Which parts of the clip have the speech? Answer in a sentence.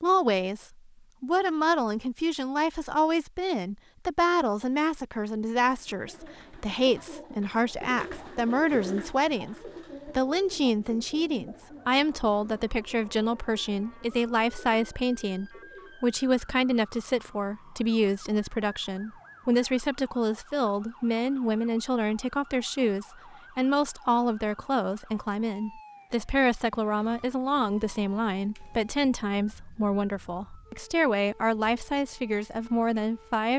You can hear the speech from 0.0 to 33.5 s.